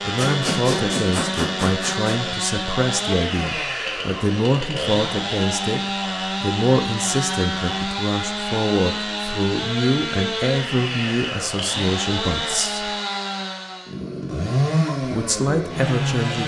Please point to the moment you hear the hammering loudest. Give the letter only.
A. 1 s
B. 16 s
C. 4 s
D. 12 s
A.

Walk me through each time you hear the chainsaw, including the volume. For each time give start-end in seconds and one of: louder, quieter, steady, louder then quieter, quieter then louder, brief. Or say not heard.
0.0-16.4 steady.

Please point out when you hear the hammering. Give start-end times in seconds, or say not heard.
0.1-2.1.